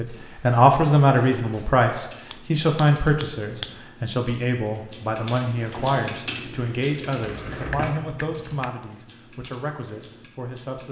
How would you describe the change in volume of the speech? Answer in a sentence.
The volume of the speech goes down.